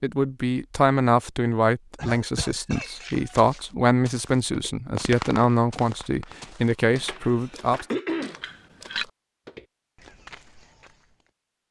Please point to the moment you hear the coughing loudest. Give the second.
8 s.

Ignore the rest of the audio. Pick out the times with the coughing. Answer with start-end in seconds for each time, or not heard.
1.9-2.9, 6.7-8.4.